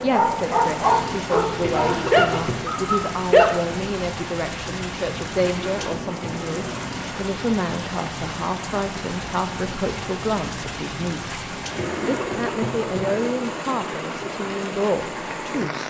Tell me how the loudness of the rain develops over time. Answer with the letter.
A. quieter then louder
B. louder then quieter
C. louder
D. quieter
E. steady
E.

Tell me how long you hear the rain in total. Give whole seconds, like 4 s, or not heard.
16 s.